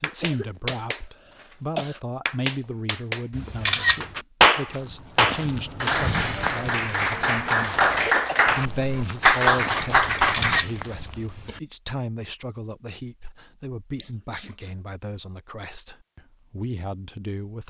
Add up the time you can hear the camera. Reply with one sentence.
You can hear the camera for 2 seconds altogether.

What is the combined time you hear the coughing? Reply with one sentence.
You can hear the coughing for 4 seconds altogether.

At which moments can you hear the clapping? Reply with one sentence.
The clapping can be heard from 0.0 to 10.6 s.